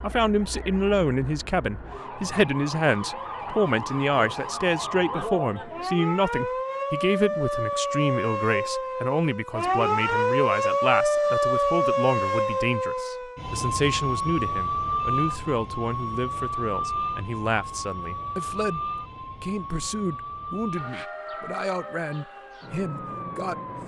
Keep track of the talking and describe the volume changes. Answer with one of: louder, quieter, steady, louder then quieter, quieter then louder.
quieter.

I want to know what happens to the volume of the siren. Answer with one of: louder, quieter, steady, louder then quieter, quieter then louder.
louder then quieter.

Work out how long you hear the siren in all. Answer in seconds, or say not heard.
24 s.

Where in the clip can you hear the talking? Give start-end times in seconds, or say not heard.
0.0-23.8.